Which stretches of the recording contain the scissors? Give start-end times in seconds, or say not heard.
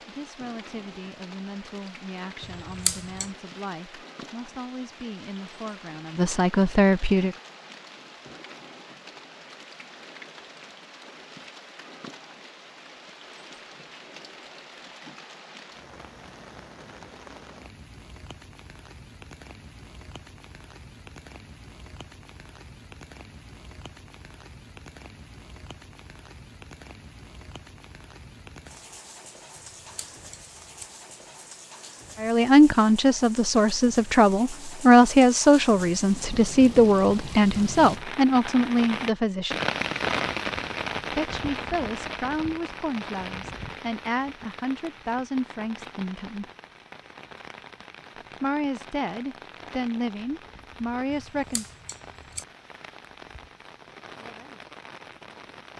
2.4-3.3, 29.6-30.9, 51.1-52.5.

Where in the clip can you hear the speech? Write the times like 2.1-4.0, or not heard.
0.1-7.3, 32.2-39.6, 41.1-46.5, 48.4-51.7.